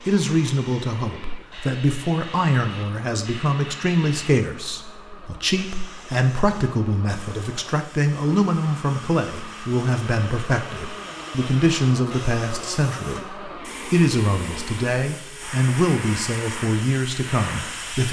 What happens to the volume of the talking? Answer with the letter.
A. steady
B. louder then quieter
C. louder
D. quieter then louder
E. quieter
A.